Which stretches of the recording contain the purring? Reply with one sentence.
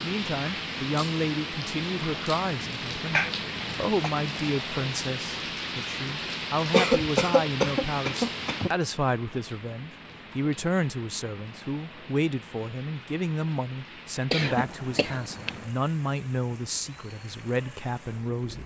You can't hear the purring here.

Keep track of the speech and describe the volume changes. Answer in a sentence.
The volume of the speech stays about the same.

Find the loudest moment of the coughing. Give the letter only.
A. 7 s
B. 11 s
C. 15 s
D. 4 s
A.